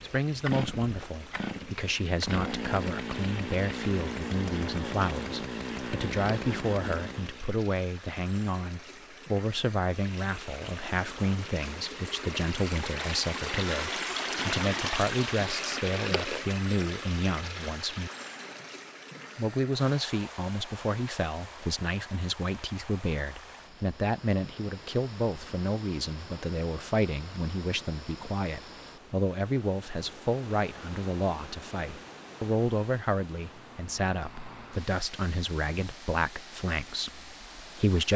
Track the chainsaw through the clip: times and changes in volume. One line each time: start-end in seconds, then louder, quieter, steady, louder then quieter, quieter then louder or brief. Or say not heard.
0.0-7.5 steady.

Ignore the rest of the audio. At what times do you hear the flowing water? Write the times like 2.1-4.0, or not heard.
0.0-38.1.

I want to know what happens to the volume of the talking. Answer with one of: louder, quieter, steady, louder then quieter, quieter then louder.
steady.